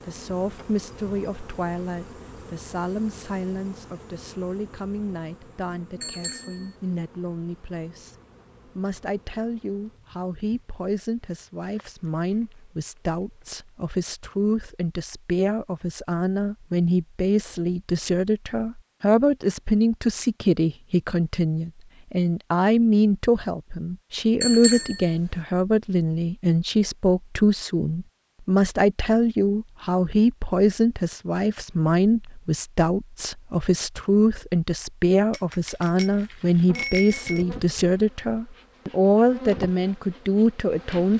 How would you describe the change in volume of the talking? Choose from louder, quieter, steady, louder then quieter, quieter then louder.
louder.